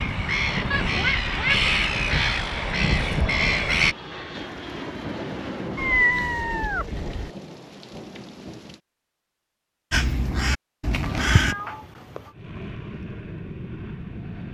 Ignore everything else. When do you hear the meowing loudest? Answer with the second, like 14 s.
6 s.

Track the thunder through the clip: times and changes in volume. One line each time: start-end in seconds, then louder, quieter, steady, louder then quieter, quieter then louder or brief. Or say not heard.
4.3-8.8 quieter.